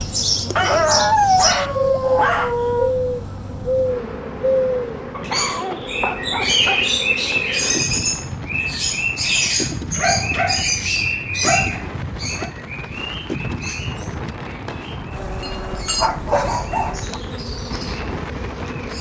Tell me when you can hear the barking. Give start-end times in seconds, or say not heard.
0.6-2.9, 5.1-7.0, 9.8-12.5, 15.4-17.2.